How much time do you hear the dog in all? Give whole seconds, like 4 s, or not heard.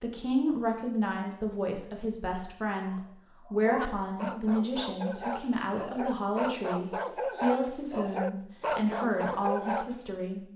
7 s.